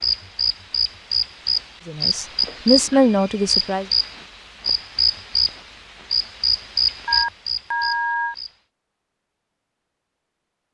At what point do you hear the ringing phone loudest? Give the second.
8 s.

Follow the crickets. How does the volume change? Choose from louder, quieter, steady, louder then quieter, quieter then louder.
steady.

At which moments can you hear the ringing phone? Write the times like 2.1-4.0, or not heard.
2.7-3.5, 7.0-8.3.